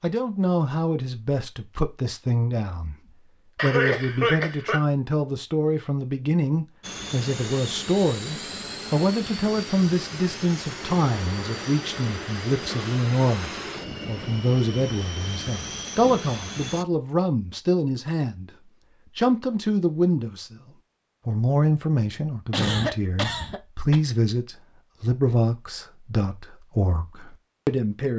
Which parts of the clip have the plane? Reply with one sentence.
The plane can be heard from 6.8 to 16.9 s.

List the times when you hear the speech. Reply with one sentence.
You can hear the speech from 0.0 to 3.0 s, from 3.6 to 20.6 s and from 21.2 to 28.1 s.